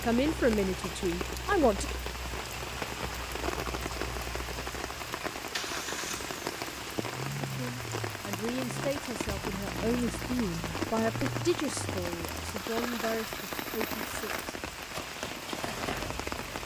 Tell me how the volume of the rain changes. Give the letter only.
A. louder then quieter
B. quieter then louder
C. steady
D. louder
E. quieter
C.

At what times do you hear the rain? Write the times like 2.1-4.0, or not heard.
0.0-16.6.